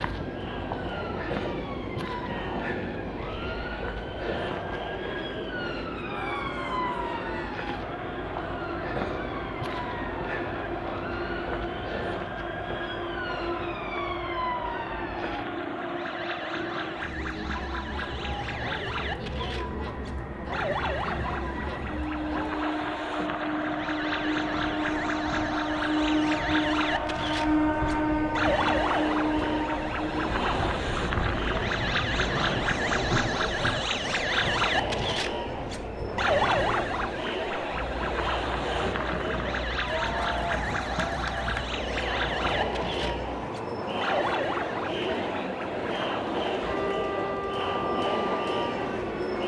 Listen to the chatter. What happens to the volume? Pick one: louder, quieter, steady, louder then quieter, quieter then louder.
louder.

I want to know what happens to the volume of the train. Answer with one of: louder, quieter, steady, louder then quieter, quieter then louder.
louder then quieter.